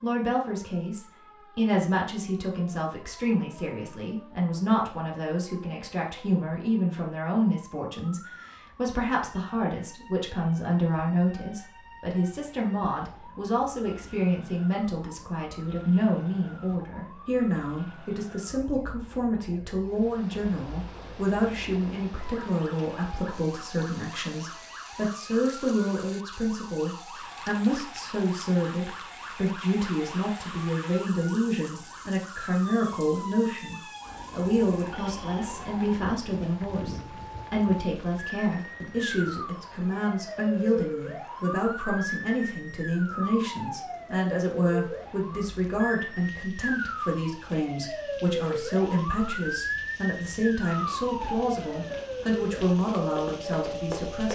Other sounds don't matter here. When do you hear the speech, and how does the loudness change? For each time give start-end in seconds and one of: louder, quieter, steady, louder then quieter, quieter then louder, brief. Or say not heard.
0.0-54.3 steady.